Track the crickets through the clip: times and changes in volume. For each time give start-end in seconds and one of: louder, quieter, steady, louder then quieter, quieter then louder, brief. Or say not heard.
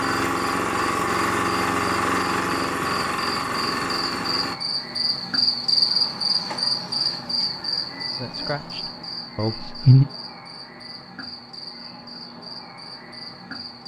0.0-13.8 louder then quieter.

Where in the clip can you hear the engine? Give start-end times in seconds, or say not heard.
0.0-4.5.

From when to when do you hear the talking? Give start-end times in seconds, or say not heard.
8.2-10.1.